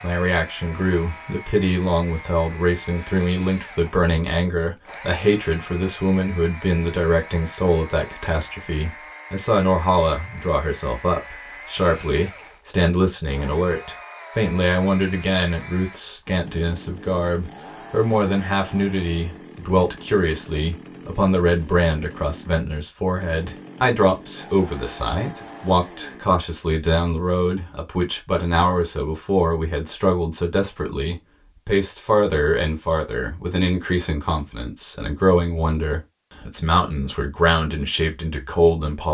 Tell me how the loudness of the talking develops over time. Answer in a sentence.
The volume of the talking stays about the same.